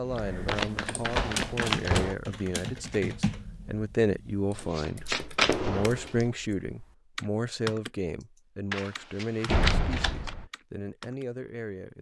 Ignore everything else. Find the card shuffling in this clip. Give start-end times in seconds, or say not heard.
0.5-2.0, 4.5-6.2, 8.7-10.3.